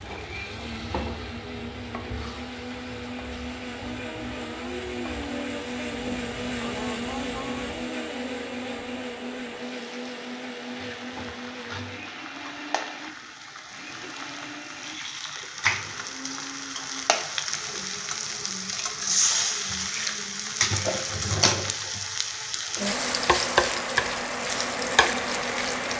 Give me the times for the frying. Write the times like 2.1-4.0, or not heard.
0.0-25.9.